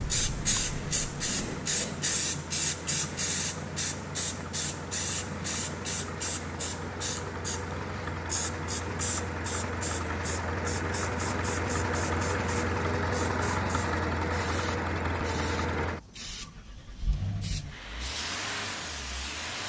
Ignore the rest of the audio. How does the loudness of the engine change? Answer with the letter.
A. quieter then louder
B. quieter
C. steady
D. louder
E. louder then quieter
E.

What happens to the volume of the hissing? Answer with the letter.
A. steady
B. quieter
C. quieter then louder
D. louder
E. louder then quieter
B.